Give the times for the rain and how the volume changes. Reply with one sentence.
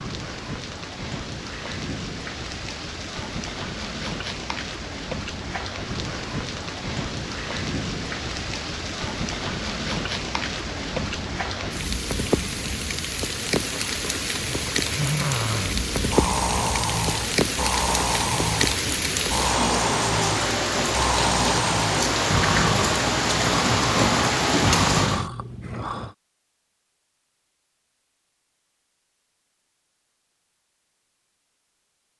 You can hear the rain from 0.0 to 25.3 s, getting louder.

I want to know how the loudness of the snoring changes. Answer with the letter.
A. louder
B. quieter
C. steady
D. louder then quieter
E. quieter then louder
C.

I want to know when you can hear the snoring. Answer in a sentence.
You can hear the snoring from 14.6 to 26.1 s.